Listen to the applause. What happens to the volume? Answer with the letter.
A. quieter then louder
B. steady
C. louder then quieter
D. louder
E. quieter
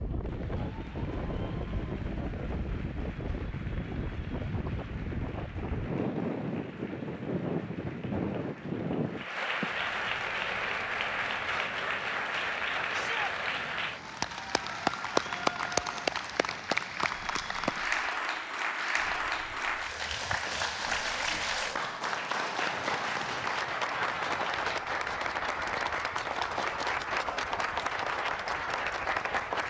D.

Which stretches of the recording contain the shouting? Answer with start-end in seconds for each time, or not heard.
12.9-13.3.